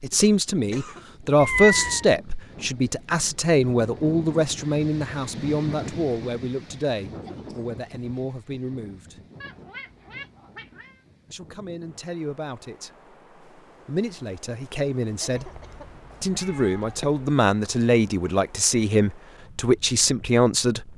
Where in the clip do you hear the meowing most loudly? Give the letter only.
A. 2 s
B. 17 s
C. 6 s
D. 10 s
A.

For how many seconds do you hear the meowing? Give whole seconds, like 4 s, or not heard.
4 s.